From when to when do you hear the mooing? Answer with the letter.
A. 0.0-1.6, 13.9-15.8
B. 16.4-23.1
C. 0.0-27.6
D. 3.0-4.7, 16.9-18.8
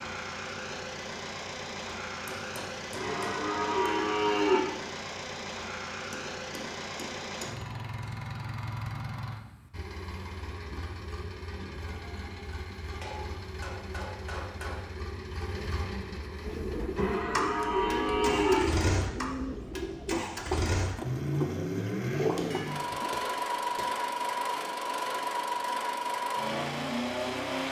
D.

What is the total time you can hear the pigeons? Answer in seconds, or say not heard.
7 s.